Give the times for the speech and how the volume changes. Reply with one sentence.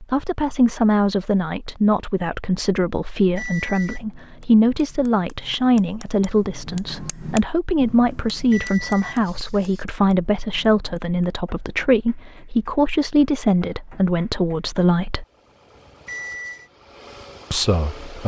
The speech can be heard from 0.0 to 15.2 s, at a steady volume; and briefly from 17.5 to 18.2 s.